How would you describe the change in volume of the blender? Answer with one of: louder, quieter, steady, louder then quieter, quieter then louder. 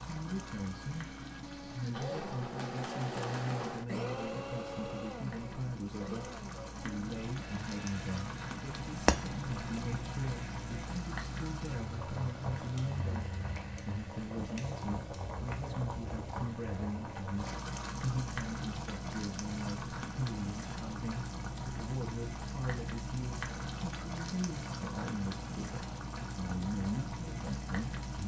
quieter.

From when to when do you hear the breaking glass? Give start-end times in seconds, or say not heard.
9.1-9.8.